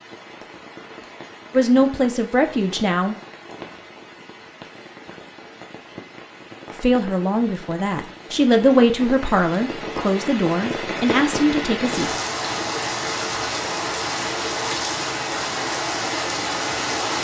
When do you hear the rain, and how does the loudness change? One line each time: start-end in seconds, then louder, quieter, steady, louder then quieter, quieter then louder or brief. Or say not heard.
0.0-17.1 louder.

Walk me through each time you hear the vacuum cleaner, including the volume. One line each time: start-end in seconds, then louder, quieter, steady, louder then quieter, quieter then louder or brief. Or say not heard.
not heard.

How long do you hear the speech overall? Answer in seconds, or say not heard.
7 s.